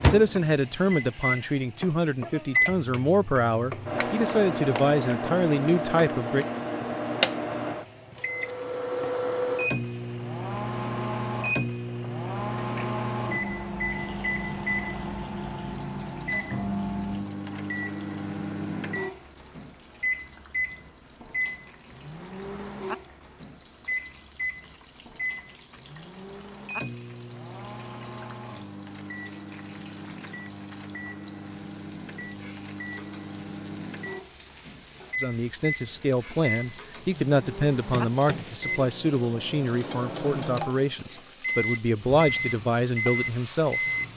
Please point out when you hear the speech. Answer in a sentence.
You can hear the speech from 0.0 to 6.5 s and from 35.1 to 43.9 s.